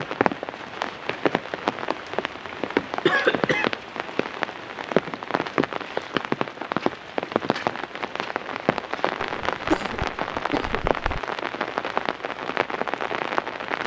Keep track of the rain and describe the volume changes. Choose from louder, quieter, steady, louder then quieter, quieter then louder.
steady.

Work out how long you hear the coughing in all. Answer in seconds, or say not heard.
3 s.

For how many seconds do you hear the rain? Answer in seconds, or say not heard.
14 s.